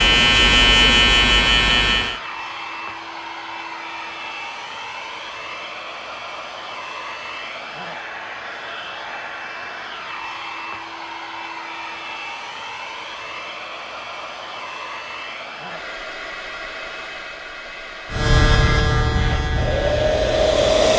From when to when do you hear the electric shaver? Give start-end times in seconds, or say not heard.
0.0-2.2, 18.1-20.9.